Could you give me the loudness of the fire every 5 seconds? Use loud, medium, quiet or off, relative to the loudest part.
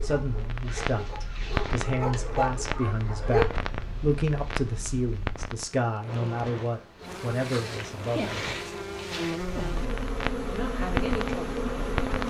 loud, medium, loud.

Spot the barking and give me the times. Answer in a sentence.
You can hear the barking from 0.0 to 3.5 s.